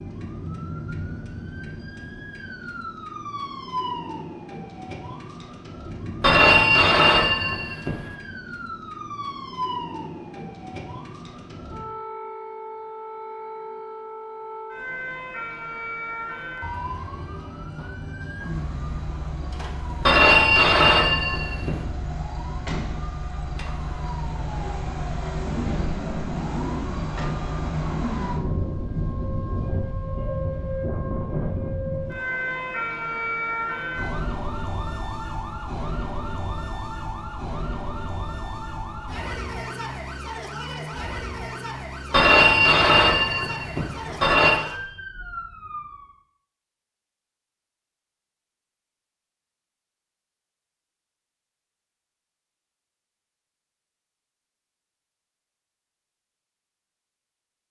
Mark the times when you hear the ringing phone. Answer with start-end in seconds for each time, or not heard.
6.2-8.0, 20.1-21.8, 42.1-44.6.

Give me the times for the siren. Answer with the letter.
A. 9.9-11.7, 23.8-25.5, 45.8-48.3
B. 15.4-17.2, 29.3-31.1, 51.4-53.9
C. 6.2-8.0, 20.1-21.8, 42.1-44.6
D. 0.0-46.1
D.